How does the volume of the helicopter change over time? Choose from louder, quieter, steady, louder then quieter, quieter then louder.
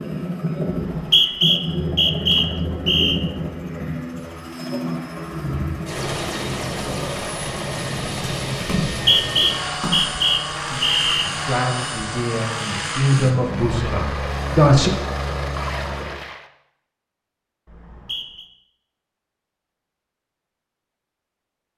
steady.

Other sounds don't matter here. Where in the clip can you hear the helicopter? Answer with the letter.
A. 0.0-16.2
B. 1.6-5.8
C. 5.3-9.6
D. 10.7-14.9
A.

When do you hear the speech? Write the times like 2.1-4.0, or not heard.
10.7-14.9.